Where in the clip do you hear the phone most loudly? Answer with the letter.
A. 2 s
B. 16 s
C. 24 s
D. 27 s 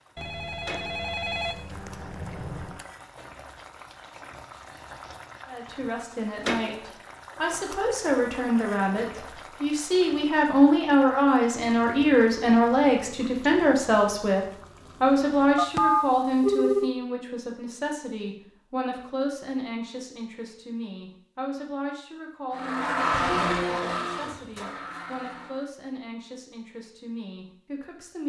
B.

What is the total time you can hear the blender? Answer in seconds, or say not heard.
3 s.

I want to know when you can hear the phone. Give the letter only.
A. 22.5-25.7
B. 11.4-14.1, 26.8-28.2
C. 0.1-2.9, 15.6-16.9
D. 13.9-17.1
C.